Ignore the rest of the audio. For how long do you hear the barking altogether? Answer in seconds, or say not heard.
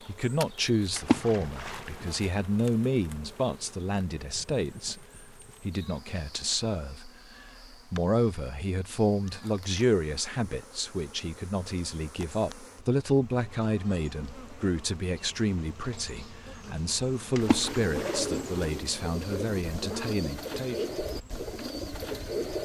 not heard.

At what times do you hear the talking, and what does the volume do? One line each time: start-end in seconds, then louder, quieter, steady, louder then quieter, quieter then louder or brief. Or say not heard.
0.1-20.9 steady.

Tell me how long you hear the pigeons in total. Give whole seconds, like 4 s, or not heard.
5 s.